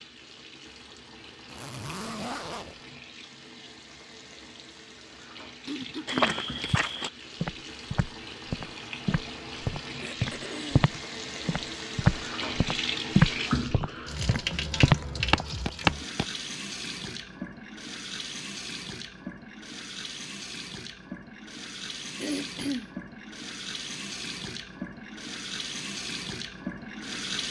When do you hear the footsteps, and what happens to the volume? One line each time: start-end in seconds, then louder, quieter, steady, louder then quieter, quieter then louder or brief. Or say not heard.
6.0-16.2 louder.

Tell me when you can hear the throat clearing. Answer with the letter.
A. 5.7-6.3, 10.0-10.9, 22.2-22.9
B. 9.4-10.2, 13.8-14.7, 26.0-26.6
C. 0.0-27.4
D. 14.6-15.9
A.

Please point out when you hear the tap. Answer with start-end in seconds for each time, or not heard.
0.0-27.4.